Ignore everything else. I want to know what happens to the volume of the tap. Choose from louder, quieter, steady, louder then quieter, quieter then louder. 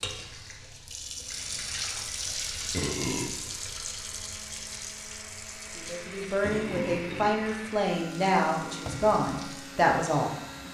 quieter then louder.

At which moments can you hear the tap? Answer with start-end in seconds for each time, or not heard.
0.0-10.7.